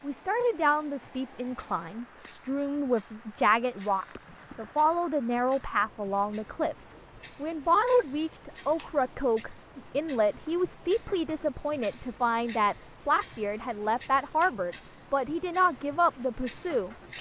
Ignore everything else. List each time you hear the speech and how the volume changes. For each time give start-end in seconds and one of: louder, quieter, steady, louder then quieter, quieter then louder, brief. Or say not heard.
0.0-17.1 steady.